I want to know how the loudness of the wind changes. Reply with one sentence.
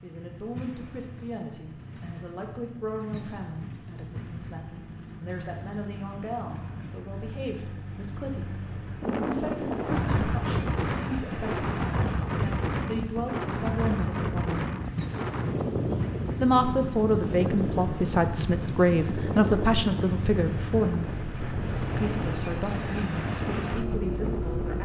The volume of the wind goes down.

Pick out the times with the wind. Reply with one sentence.
You can hear the wind from 9.0 to 24.7 s.